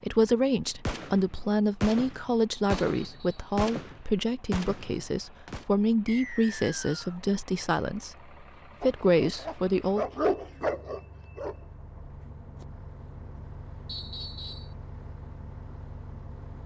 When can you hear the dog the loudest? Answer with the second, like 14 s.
10 s.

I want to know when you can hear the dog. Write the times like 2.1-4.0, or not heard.
8.8-11.7.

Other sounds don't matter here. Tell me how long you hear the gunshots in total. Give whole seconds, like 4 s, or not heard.
5 s.